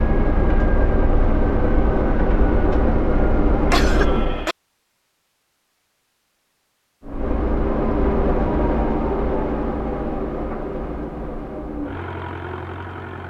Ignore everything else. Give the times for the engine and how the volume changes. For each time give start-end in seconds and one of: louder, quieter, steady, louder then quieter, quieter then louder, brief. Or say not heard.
0.0-4.5 steady
7.0-13.2 quieter.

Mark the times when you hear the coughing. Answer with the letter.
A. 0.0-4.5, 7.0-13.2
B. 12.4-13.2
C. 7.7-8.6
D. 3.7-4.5
D.